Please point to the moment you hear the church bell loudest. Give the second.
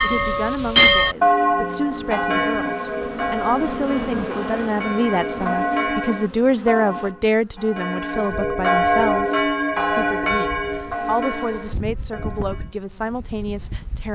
1 s.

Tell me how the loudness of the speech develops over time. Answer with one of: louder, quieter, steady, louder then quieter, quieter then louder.
louder then quieter.